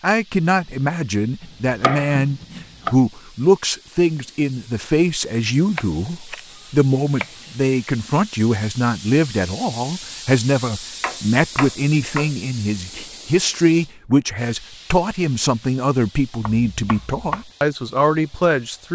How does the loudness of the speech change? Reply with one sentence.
The volume of the speech stays about the same.